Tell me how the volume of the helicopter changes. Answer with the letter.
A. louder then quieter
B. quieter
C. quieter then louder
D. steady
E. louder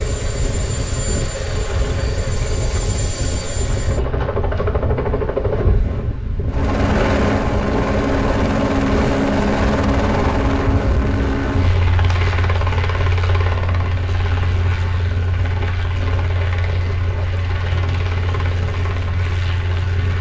A.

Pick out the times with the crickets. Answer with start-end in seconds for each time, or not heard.
not heard.